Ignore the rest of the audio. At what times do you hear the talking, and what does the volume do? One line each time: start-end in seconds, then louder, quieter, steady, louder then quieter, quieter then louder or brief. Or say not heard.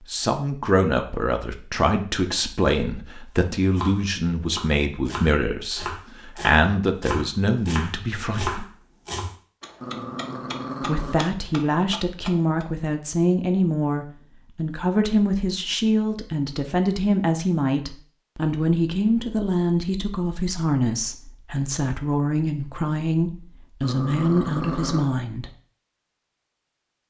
0.0-8.7 steady
10.8-25.5 steady.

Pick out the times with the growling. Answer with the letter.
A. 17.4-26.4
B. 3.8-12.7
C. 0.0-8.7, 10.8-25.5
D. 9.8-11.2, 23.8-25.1
D.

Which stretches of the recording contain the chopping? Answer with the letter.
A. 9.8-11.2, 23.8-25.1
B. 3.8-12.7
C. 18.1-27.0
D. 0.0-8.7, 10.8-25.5
B.